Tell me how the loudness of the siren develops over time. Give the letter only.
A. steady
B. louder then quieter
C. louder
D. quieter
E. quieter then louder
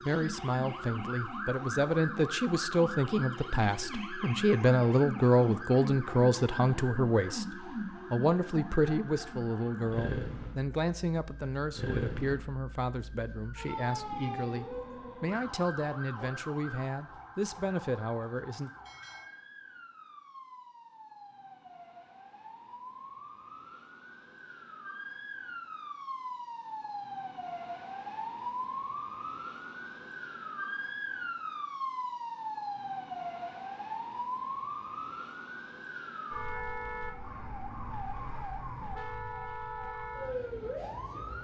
E.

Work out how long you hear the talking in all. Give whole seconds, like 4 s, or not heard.
19 s.